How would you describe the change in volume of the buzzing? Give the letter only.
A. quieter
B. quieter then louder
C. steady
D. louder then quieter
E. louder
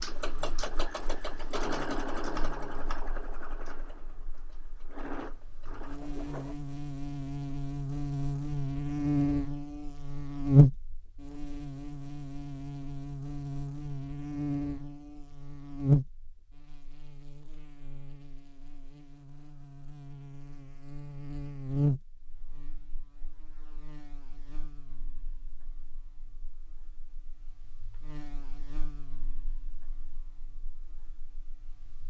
D.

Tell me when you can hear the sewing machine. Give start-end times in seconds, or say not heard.
0.0-6.5.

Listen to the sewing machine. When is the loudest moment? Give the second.
2 s.